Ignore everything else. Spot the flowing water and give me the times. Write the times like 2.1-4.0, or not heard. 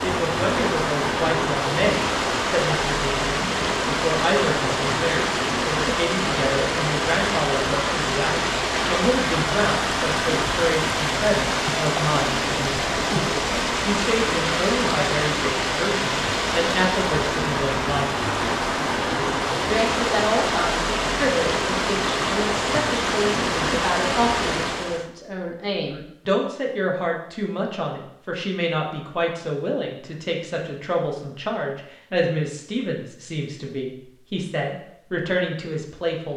0.0-25.1.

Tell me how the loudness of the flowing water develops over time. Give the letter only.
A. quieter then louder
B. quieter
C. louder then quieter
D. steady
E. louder
D.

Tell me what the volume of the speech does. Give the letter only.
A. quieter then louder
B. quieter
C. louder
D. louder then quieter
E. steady
E.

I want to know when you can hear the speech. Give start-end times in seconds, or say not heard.
0.0-18.1, 19.6-36.3.